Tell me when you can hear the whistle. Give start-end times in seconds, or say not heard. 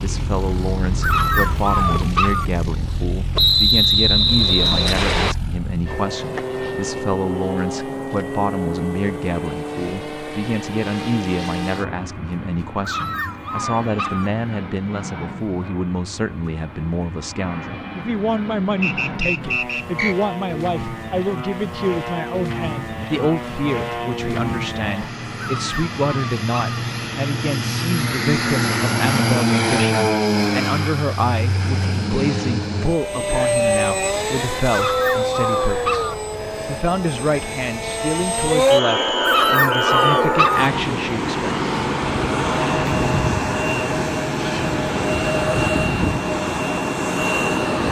3.4-5.3, 18.8-20.1, 38.7-40.0.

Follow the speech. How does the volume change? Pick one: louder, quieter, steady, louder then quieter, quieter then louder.
steady.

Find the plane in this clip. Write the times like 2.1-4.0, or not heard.
0.0-47.8.